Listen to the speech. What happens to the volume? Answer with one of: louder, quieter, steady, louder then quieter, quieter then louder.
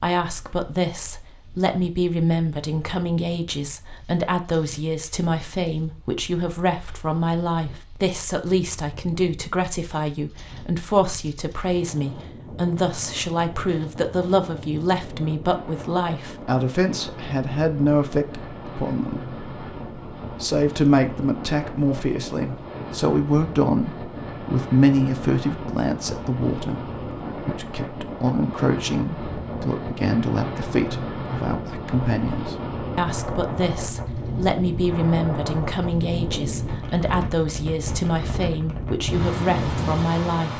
steady.